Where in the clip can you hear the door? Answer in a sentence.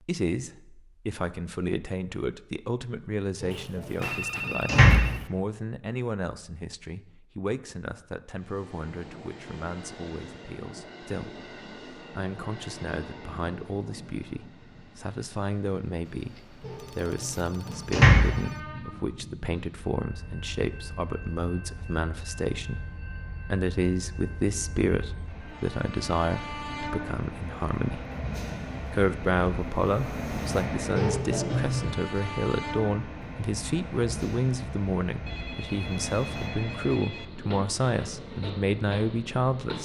You can hear the door from 3.4 to 5.2 s, from 16.6 to 18.4 s and from 30.9 to 31.9 s.